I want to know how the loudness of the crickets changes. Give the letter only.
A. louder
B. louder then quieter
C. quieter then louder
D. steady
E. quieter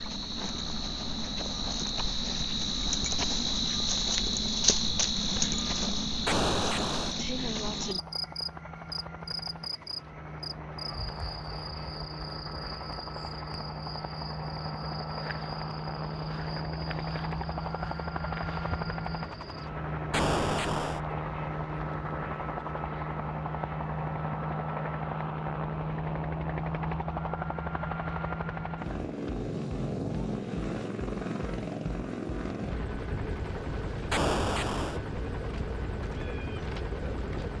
E.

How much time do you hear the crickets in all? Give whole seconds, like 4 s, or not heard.
20 s.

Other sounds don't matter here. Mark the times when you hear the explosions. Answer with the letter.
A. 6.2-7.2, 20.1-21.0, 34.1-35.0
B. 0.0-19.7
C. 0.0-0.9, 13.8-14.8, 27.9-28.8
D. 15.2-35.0
A.